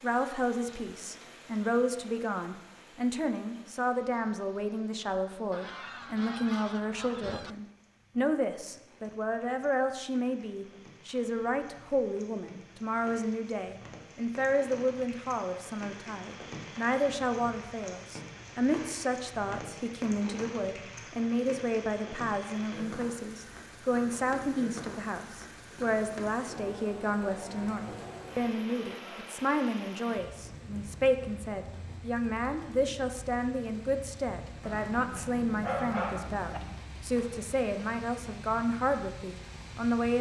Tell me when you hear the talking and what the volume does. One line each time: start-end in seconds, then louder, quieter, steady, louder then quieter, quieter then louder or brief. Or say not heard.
0.0-40.1 steady.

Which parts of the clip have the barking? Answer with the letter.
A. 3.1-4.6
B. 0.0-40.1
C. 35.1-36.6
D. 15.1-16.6
C.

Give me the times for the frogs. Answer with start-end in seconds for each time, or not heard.
not heard.